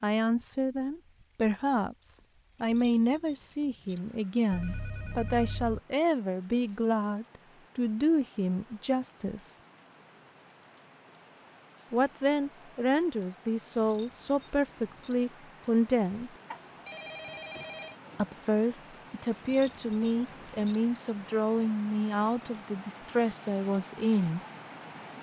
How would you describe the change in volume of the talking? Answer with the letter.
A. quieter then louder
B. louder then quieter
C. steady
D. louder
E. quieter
C.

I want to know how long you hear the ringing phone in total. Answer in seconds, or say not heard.
3 s.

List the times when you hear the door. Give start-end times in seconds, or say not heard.
not heard.